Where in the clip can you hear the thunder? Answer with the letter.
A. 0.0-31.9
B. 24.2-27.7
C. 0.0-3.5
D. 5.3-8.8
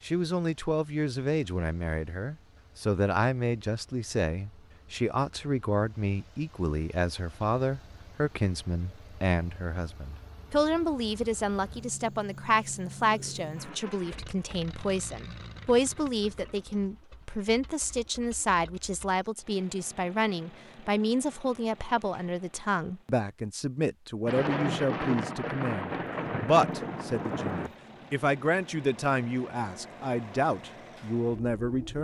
B.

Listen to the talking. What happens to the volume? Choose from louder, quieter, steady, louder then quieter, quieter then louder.
steady.